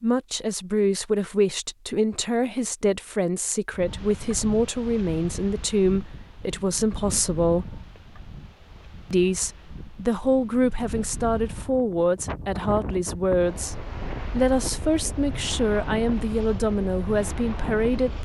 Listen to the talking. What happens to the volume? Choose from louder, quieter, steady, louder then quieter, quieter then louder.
steady.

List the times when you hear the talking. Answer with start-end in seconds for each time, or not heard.
0.0-7.8, 9.1-18.1.